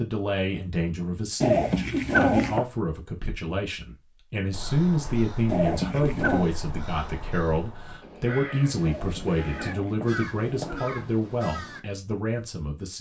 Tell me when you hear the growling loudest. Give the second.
2 s.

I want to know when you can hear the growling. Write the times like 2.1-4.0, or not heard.
1.4-2.6, 5.5-6.5, 8.8-11.2.